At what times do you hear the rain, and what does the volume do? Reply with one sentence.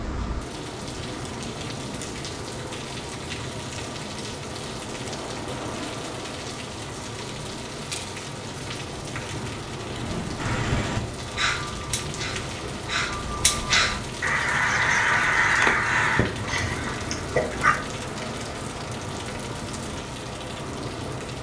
You can hear the rain from 0.0 to 21.3 s, at a steady volume.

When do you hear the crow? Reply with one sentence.
You can hear the crow from 10.3 to 17.8 s.